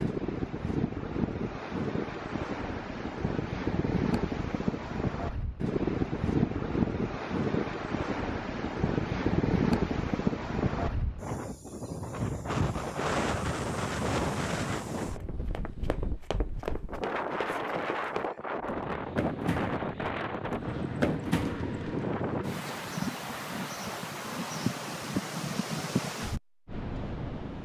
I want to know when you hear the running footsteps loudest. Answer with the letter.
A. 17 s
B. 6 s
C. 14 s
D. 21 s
D.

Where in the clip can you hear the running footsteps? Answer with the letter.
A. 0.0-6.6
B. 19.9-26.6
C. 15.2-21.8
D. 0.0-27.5
C.